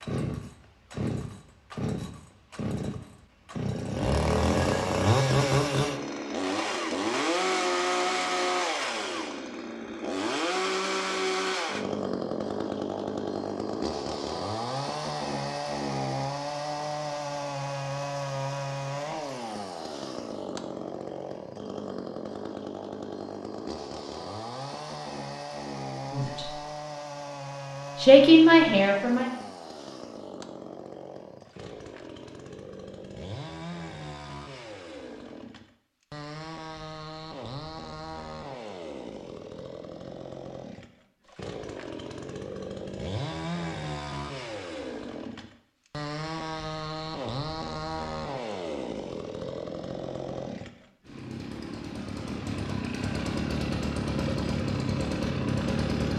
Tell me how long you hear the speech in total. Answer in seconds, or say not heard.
2 s.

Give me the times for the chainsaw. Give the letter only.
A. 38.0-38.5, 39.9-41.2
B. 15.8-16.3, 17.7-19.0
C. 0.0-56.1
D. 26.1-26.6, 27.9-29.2
C.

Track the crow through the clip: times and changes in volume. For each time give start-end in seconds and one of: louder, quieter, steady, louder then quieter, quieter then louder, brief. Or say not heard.
not heard.